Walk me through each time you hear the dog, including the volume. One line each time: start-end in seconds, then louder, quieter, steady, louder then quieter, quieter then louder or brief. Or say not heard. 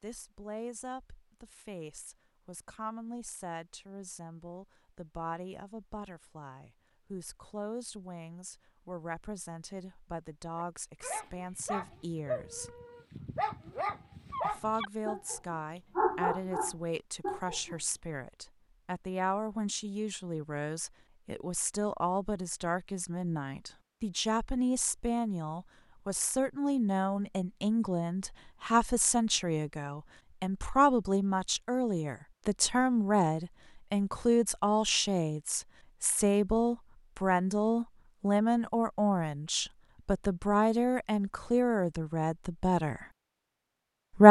10.6-17.8 louder.